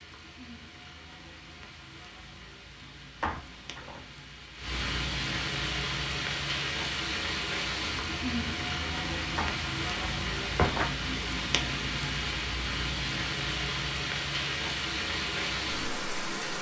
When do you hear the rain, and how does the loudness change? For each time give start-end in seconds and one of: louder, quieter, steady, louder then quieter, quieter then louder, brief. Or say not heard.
0.0-16.5 louder.